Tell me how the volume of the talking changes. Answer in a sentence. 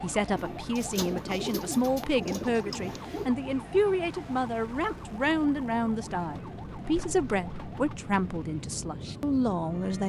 The volume of the talking stays about the same.